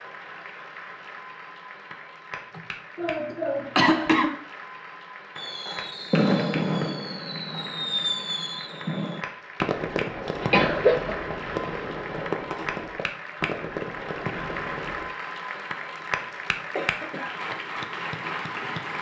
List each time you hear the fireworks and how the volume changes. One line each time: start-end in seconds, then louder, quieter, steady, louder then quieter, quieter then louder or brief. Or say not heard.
5.3-15.1 quieter.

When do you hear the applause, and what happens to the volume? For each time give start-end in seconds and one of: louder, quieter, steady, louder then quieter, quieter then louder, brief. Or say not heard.
0.0-18.9 louder.